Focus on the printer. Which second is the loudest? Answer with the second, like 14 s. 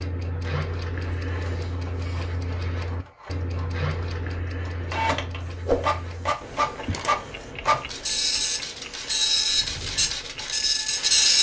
11 s.